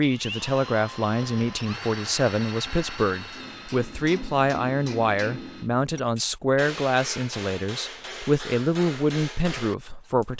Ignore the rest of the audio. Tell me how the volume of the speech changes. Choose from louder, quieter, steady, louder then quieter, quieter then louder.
steady.